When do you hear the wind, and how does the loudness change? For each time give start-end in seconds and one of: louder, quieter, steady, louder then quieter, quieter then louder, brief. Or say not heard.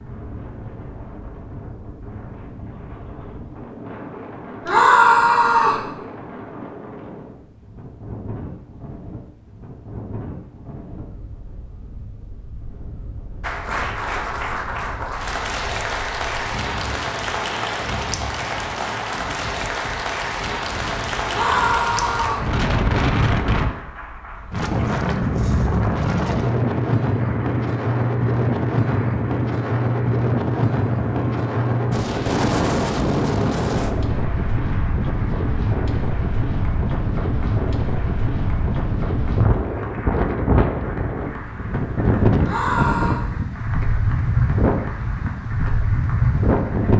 0.0-46.9 louder.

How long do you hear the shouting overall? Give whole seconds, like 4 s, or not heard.
3 s.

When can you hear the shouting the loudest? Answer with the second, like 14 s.
5 s.